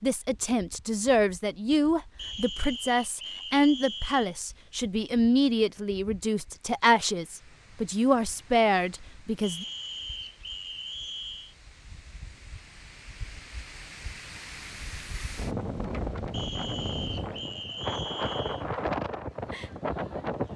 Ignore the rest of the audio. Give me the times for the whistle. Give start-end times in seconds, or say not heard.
2.1-4.3, 9.4-11.6, 16.3-18.6.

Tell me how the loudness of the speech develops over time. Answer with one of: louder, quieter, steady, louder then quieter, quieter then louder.
steady.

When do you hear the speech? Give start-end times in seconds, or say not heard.
0.0-9.7.